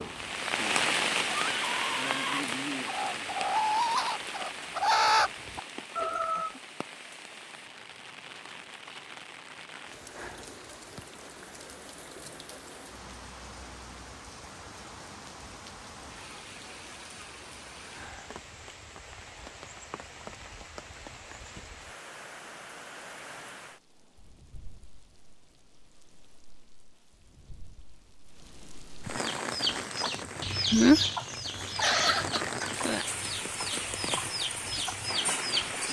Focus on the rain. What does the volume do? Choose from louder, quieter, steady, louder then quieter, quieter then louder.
quieter then louder.